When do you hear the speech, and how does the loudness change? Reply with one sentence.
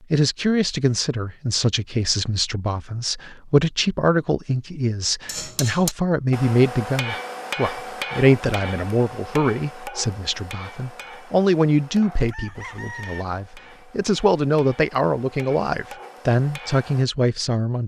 You can hear the speech from 0.1 to 17.8 s, at a steady volume.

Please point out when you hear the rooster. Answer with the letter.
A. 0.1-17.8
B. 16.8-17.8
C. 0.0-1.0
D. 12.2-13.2
D.